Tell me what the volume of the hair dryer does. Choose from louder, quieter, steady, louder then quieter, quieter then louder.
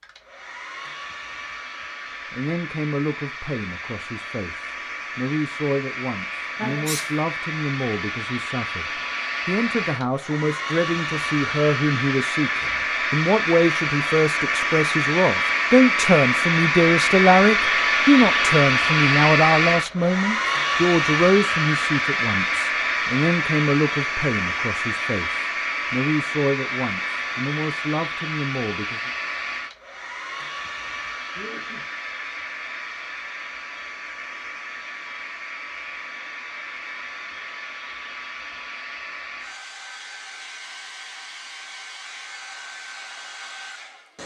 louder then quieter.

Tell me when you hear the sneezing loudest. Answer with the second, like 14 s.
7 s.